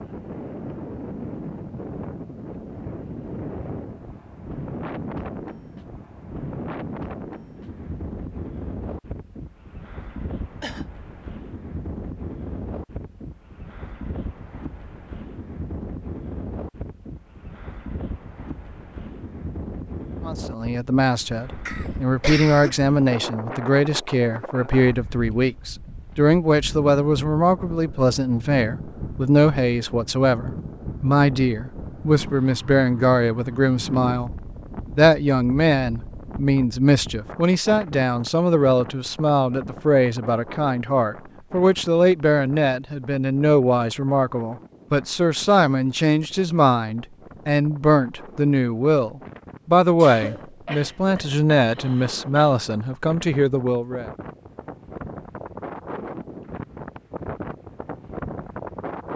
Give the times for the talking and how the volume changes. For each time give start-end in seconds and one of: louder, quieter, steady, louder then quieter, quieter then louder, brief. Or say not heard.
20.2-54.0 steady.